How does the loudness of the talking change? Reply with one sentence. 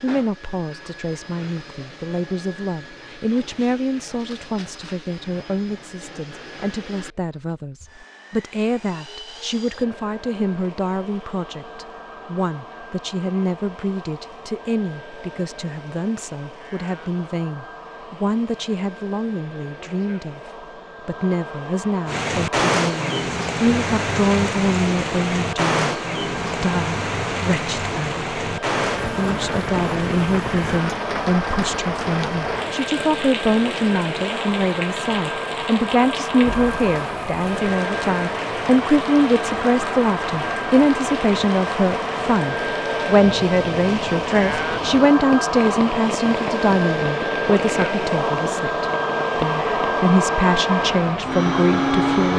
The loudness of the talking goes up.